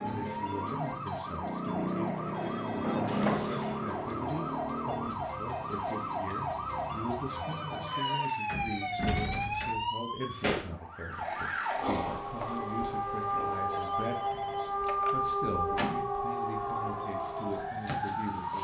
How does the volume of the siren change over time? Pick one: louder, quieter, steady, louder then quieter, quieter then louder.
steady.